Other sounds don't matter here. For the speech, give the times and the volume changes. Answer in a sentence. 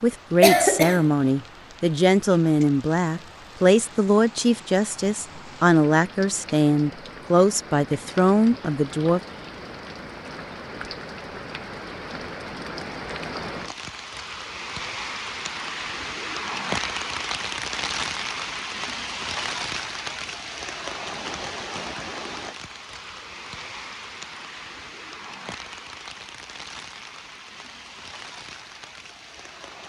The speech can be heard from 0.0 to 9.2 s, at a steady volume.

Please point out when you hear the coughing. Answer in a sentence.
The coughing can be heard from 0.4 to 1.1 s.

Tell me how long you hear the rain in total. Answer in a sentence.
The rain can be heard for 30 seconds in total.